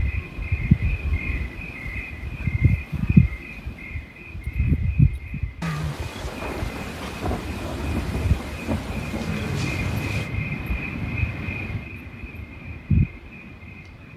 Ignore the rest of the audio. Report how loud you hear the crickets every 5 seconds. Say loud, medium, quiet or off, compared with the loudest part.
loud, medium, medium.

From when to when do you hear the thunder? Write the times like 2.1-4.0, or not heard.
5.6-10.3.